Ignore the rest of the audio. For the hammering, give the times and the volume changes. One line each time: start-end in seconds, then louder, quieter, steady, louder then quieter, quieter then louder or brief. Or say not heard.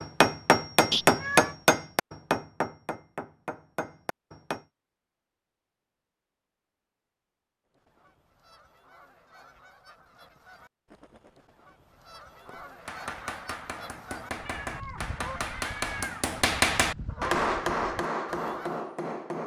0.0-4.6 quieter
12.4-19.4 louder then quieter.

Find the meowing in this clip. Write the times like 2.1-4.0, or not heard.
0.9-1.6, 14.4-16.3.